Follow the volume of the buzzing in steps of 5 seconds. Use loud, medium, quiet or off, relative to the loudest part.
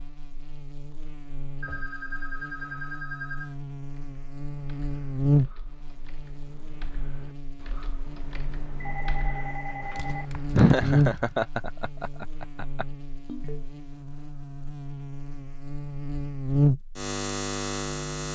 quiet, loud, loud, loud.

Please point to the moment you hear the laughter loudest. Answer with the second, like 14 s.
11 s.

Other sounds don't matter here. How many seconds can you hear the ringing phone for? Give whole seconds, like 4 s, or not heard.
4 s.